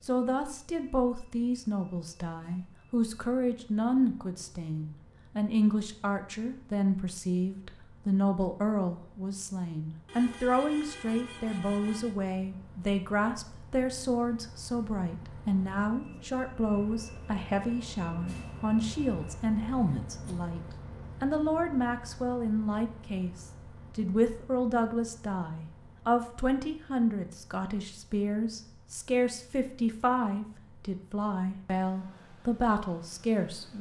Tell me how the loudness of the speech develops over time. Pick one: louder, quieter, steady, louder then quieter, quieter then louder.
steady.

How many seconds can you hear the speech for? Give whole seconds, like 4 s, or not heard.
33 s.